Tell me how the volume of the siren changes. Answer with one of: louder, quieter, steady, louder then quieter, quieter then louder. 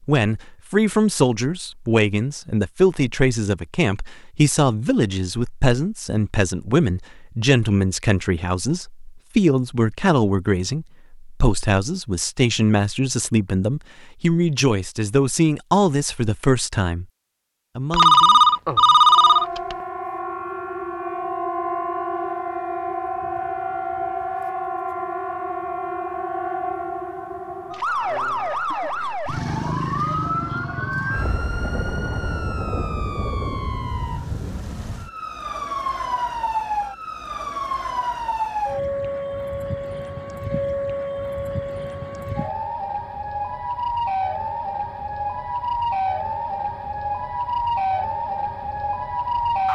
steady.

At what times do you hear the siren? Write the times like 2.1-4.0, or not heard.
18.9-49.7.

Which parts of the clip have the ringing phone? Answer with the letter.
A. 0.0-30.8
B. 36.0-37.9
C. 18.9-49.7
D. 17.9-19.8
D.